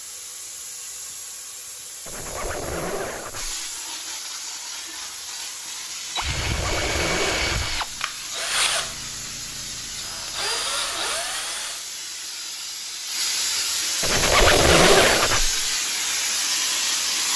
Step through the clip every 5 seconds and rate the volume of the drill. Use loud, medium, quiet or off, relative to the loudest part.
off, loud, loud, off.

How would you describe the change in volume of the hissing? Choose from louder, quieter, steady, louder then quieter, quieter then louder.
louder.